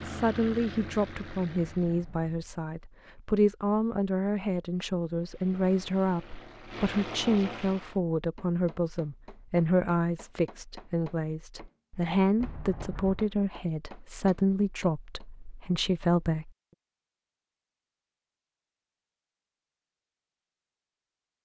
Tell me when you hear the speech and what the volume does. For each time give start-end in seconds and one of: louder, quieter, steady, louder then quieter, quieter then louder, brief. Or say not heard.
0.0-16.5 steady.